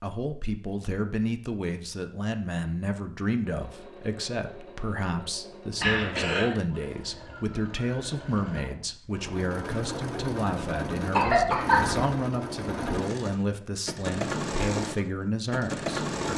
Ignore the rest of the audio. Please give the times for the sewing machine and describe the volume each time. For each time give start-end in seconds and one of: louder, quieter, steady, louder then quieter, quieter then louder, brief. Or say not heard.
3.5-16.3 louder.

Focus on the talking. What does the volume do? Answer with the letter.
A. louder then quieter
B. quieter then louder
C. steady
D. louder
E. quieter
C.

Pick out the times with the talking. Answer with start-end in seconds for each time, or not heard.
0.0-16.3.